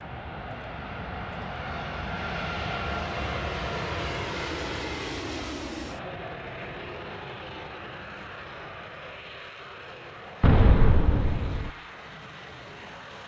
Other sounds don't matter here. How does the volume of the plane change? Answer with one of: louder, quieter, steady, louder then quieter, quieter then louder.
quieter.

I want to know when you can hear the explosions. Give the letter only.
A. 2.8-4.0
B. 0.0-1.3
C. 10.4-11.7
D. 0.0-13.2
C.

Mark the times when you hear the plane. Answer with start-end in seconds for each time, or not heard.
0.0-13.2.